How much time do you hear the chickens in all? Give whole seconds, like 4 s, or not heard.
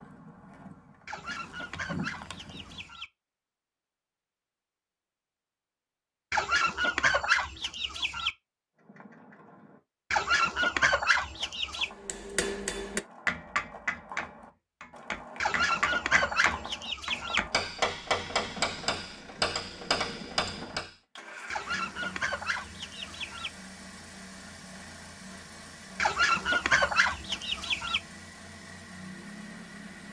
12 s.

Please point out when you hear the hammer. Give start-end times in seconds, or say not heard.
11.9-20.9.